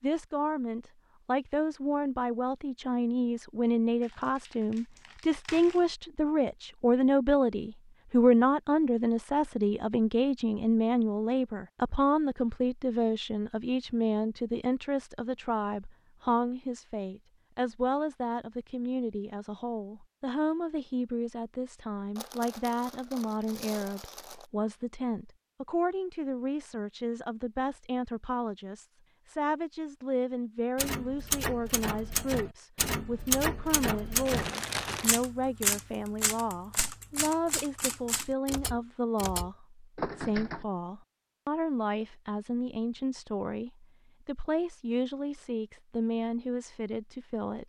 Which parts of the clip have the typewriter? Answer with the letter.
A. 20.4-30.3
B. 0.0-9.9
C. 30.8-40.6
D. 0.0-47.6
C.